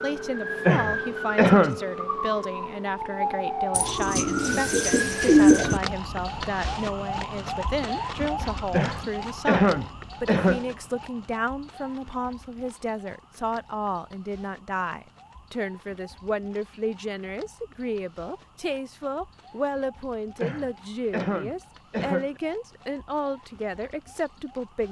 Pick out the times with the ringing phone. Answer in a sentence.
You can't hear the ringing phone here.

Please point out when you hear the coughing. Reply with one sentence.
You can hear the coughing from 0.7 to 1.8 s, from 8.7 to 10.8 s and from 20.4 to 22.4 s.